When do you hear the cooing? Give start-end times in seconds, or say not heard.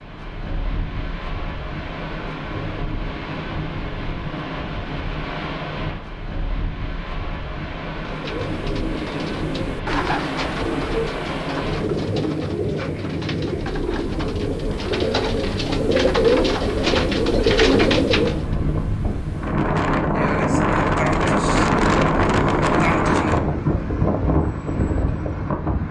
8.0-18.6.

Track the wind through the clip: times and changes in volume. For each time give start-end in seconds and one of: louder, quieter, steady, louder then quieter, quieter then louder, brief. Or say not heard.
0.0-25.8 louder.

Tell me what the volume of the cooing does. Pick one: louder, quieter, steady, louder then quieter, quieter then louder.
louder.